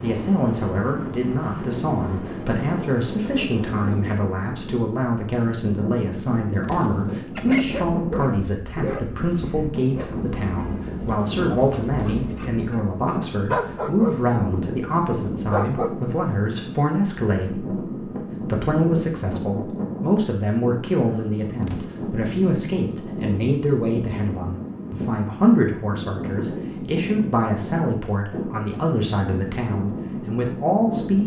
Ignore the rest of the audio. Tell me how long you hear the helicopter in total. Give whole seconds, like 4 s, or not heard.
not heard.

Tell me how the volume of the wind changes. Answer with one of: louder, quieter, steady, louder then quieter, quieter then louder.
steady.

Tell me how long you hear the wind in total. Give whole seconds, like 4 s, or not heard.
31 s.